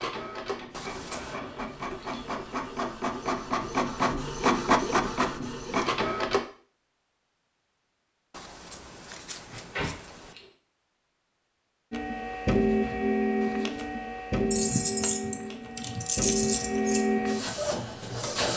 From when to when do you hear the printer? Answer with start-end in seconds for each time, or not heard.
0.0-6.4, 11.9-18.5.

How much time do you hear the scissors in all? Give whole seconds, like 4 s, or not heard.
3 s.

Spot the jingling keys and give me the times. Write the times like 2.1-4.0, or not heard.
1.1-2.4, 9.5-10.6, 14.5-17.1.